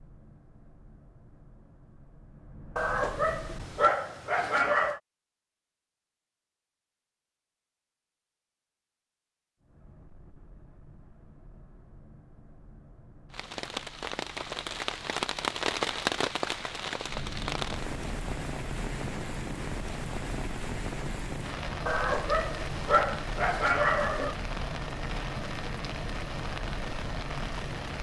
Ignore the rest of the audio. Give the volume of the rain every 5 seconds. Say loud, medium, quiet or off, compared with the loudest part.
off, off, loud, loud, medium, medium.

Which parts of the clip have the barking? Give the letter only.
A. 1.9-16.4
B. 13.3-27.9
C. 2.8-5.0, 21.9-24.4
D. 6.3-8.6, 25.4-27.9
C.